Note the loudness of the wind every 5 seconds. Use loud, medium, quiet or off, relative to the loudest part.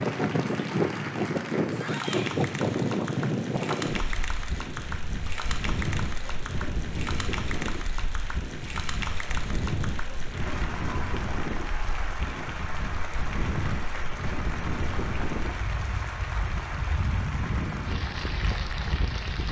loud, medium, medium, medium.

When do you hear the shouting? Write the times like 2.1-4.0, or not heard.
1.7-2.3.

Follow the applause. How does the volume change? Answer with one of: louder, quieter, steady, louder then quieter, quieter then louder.
steady.